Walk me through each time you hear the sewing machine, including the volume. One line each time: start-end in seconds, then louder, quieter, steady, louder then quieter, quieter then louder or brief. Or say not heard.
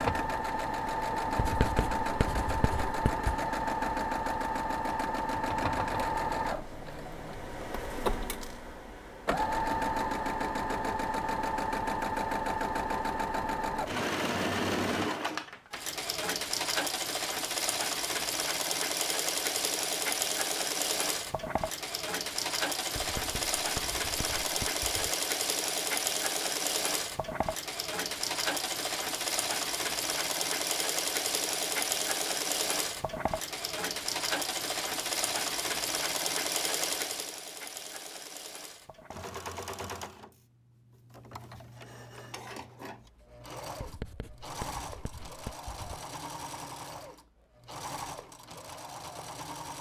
0.0-49.7 quieter.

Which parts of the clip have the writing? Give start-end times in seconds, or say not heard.
1.4-3.3, 22.9-25.1, 43.8-46.0.